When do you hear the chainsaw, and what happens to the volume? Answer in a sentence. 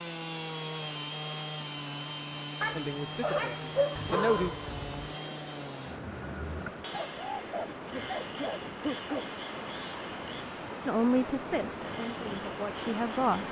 You can hear the chainsaw from 0.0 to 13.4 s, getting quieter.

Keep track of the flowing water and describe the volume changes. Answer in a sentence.
The volume of the flowing water goes up.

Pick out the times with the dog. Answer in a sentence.
The dog can be heard from 2.6 to 5.2 s and from 6.9 to 9.3 s.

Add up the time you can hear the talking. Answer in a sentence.
The talking can be heard for 4 seconds in total.